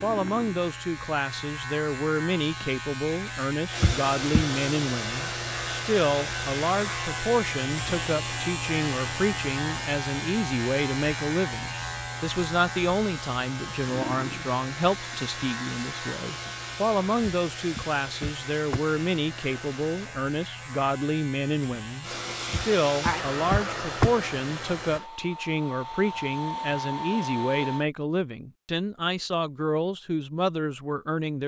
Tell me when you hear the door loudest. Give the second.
24 s.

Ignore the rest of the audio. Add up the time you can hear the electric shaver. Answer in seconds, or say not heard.
25 s.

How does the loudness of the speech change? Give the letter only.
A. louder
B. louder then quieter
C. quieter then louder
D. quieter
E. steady
E.